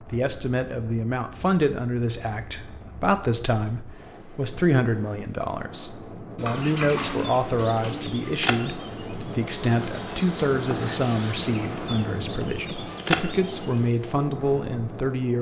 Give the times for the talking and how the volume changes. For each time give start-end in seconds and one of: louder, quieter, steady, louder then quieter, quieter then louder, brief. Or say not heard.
0.0-15.3 steady.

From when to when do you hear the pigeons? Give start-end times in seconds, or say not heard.
6.3-8.1.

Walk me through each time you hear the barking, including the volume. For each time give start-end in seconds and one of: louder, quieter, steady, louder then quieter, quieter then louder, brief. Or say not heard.
not heard.